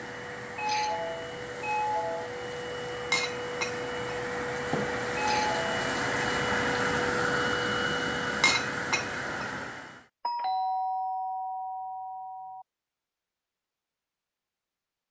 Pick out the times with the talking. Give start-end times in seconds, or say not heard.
not heard.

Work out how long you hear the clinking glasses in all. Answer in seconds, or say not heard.
3 s.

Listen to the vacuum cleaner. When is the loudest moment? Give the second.
7 s.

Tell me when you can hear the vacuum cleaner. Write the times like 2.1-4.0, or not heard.
0.0-10.1.